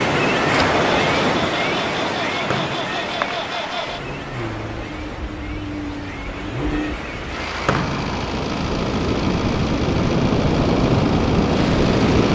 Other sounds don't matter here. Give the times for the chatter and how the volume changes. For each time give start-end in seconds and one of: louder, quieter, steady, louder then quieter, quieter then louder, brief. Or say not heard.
not heard.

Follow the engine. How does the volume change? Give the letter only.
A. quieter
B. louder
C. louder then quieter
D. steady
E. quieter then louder
D.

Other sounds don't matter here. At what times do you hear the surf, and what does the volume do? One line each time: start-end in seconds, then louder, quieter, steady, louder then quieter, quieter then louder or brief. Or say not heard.
0.0-12.3 quieter then louder.